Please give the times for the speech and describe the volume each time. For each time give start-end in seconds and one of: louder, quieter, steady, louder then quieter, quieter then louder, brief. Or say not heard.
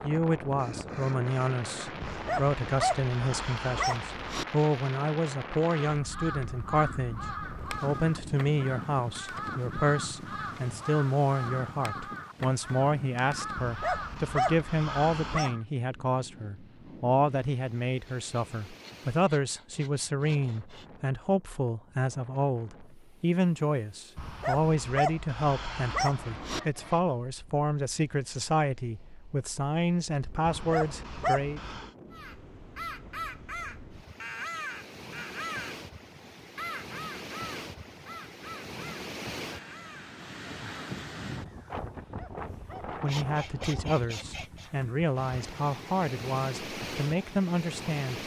0.0-31.6 steady
42.9-48.2 steady.